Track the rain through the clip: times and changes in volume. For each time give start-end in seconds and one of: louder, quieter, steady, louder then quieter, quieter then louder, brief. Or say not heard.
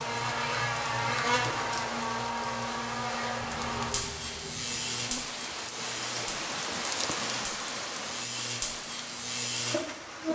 0.0-10.3 louder then quieter.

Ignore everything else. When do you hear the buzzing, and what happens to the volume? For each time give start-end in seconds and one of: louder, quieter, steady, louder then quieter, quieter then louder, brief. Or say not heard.
0.0-10.3 quieter then louder.